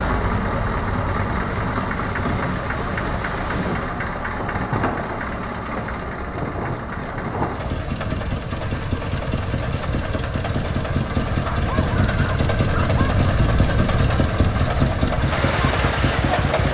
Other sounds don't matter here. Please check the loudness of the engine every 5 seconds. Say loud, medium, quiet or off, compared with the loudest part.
loud, medium, loud, loud.